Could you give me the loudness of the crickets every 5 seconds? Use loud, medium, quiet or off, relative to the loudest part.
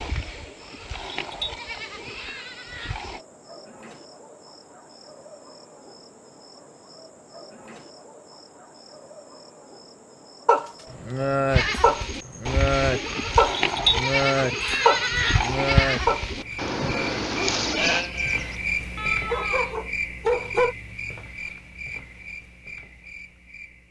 quiet, quiet, quiet, loud, medium.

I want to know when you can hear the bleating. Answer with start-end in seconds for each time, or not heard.
0.0-3.2, 11.5-19.8.